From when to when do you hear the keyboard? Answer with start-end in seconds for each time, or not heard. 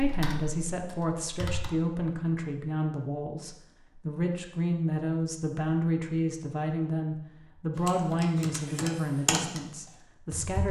0.0-1.7, 7.8-10.6.